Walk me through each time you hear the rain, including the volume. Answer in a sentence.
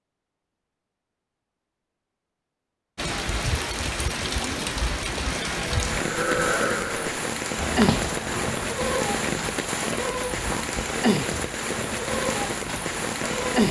You can hear the rain from 3.0 to 13.6 s, at a steady volume.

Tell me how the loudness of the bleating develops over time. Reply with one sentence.
The volume of the bleating goes down.